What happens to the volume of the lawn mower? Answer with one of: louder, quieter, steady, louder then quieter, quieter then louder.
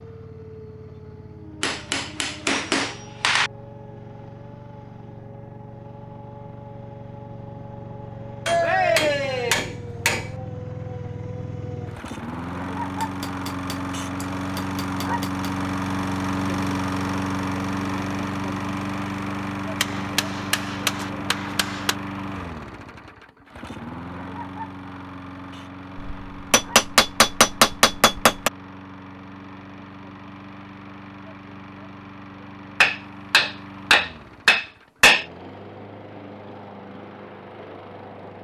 louder then quieter.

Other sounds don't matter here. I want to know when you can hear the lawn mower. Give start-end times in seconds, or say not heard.
0.0-38.3.